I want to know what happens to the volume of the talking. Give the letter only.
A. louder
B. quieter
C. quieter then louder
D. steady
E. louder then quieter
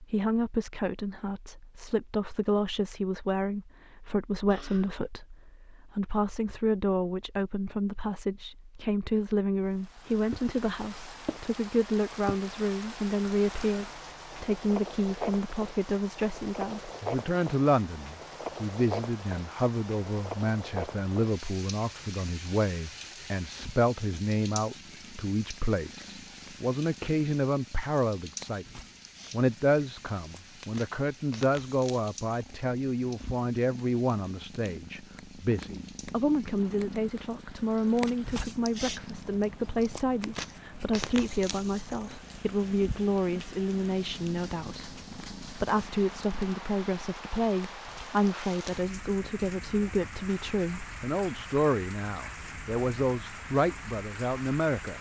D.